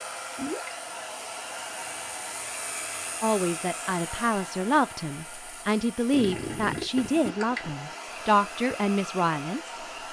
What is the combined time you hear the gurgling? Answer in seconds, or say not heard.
2 s.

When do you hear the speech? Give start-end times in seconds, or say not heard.
3.2-9.8.